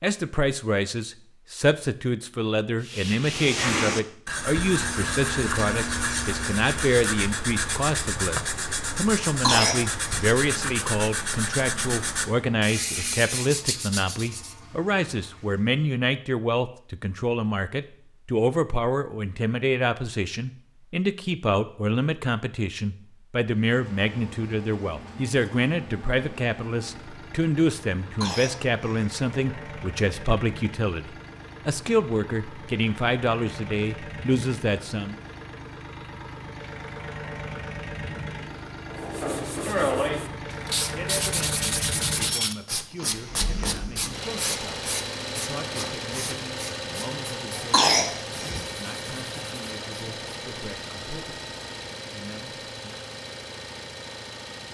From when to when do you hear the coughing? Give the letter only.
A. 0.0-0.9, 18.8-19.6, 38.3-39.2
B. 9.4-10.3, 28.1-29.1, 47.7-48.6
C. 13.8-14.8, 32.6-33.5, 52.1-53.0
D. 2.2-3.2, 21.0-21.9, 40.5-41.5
B.